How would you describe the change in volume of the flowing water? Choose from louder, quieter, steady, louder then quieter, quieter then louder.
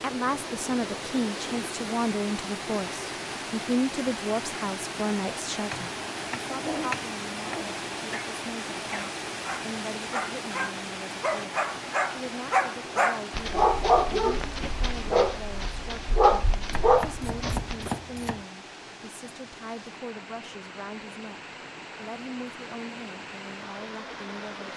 quieter.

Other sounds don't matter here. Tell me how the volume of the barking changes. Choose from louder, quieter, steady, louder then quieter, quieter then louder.
louder.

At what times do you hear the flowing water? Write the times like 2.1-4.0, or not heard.
0.0-24.7.